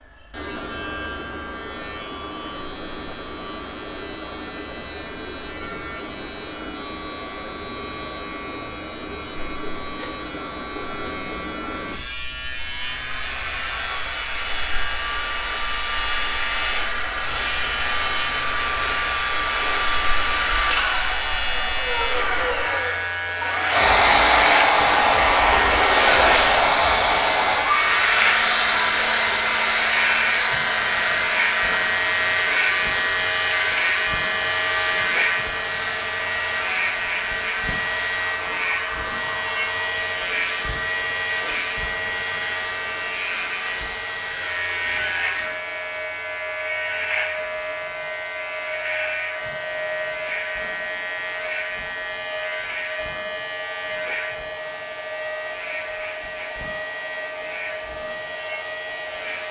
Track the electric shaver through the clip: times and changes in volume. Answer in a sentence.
You can hear the electric shaver from 0.0 to 59.4 s, getting louder then quieter.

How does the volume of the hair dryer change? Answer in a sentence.
The volume of the hair dryer goes up, then down.